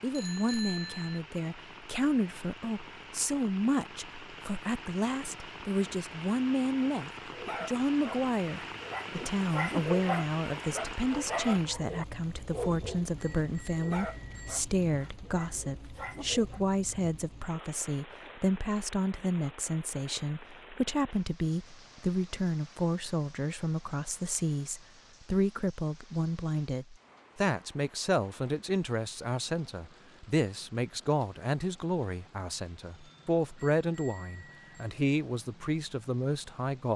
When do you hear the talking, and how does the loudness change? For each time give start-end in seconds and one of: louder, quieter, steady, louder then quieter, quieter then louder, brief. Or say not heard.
0.0-36.9 steady.